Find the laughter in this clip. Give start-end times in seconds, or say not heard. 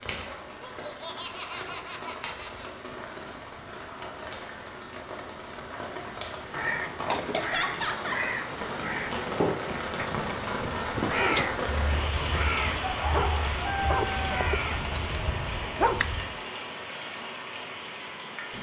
0.5-2.7, 7.3-8.2, 14.2-14.9.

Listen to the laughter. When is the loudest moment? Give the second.
8 s.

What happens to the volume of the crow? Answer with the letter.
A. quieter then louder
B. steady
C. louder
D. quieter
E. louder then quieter
B.